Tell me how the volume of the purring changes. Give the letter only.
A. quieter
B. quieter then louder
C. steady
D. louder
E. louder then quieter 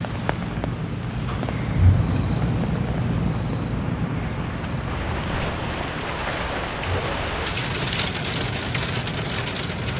A.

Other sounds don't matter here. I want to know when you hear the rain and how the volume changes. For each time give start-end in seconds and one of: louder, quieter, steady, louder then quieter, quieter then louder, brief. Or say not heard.
0.0-9.9 louder.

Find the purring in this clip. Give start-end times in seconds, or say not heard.
0.0-9.9.